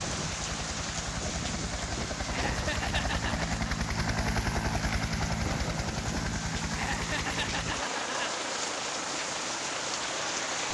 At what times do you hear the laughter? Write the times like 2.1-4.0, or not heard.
2.3-3.8, 6.7-8.3.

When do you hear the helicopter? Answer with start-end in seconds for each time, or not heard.
0.0-10.6.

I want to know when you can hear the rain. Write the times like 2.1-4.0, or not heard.
0.0-10.6.